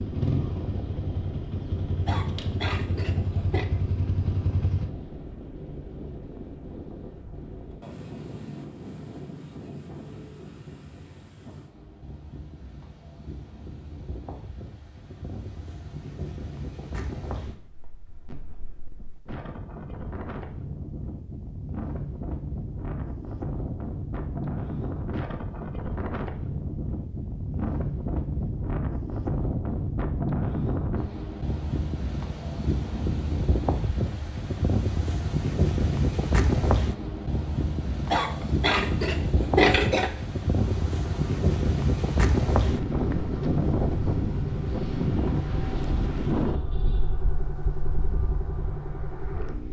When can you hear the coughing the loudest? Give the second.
40 s.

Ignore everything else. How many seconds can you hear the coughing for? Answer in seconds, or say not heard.
4 s.